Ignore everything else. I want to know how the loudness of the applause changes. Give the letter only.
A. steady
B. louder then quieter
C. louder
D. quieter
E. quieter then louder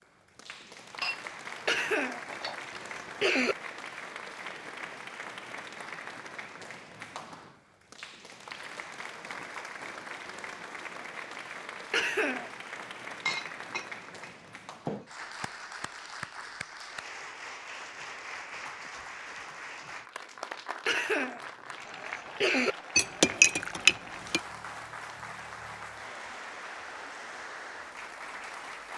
A.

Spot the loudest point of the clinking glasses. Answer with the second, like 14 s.
23 s.